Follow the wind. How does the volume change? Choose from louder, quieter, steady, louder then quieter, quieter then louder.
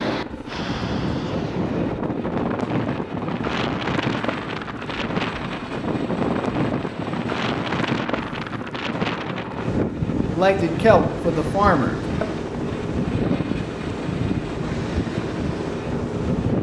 steady.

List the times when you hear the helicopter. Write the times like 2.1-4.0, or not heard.
0.1-16.5.